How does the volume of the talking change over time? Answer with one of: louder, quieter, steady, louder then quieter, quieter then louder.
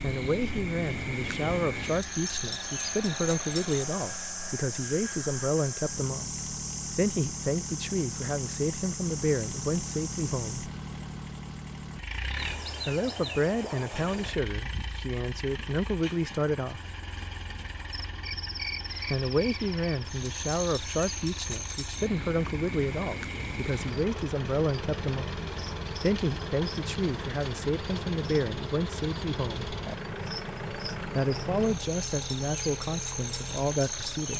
steady.